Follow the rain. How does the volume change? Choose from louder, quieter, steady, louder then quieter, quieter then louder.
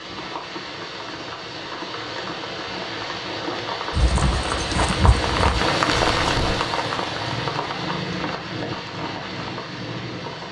louder then quieter.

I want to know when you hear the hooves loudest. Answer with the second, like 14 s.
5 s.